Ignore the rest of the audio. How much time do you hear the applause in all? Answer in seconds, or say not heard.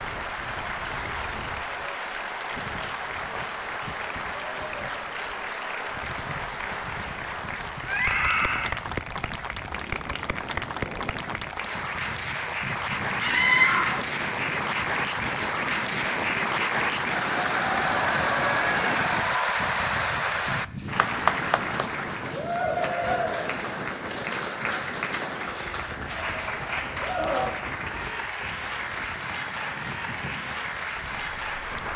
32 s.